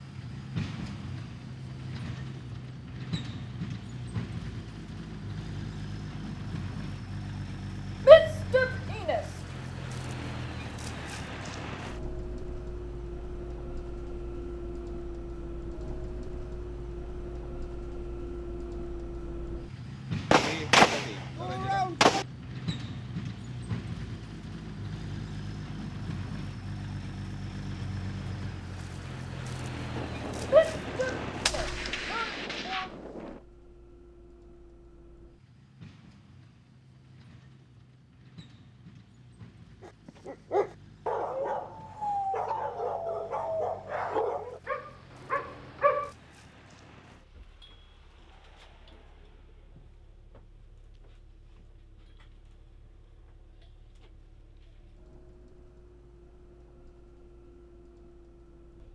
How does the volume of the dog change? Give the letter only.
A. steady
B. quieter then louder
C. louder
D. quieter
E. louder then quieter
D.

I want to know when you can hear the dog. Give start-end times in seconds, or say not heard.
39.8-46.1.